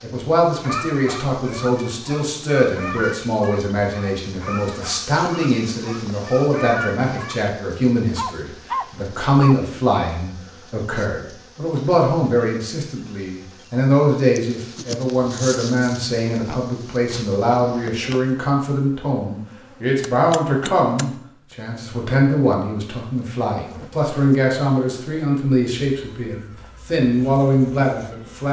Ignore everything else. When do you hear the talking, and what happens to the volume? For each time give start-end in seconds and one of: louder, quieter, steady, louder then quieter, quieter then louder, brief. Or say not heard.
0.0-28.4 steady.